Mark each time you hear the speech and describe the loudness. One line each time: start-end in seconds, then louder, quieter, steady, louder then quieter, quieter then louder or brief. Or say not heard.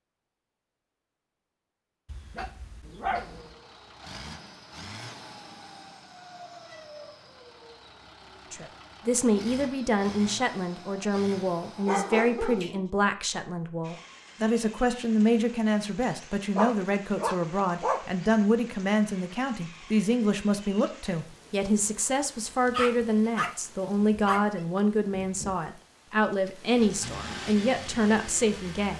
8.5-28.9 steady.